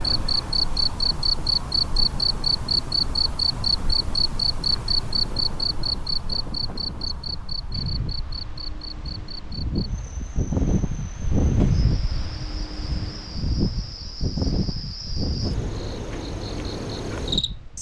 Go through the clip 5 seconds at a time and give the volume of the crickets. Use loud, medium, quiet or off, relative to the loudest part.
loud, medium, quiet, medium.